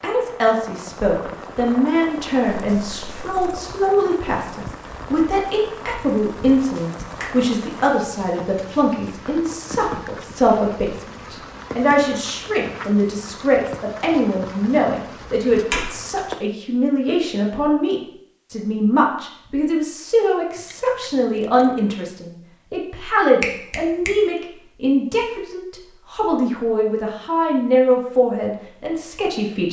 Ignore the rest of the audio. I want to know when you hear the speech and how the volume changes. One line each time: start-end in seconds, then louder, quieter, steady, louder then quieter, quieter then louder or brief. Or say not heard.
0.0-29.6 steady.